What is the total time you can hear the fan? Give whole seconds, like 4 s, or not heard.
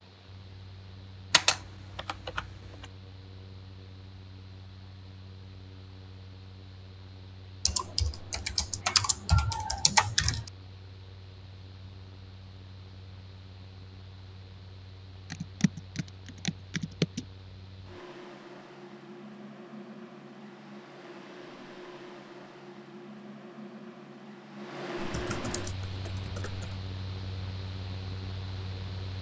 29 s.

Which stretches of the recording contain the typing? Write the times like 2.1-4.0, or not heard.
1.3-2.9, 7.7-10.5, 15.3-17.2, 24.9-26.8.